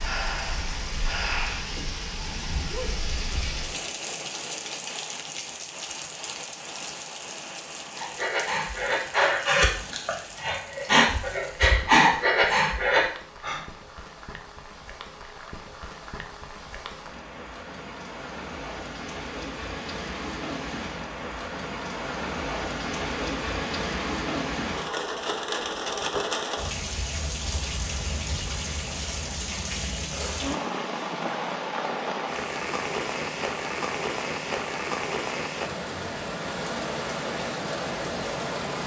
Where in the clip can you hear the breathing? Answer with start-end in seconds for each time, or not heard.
0.0-1.6, 8.0-13.6.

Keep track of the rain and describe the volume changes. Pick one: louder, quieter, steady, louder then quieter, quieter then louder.
quieter then louder.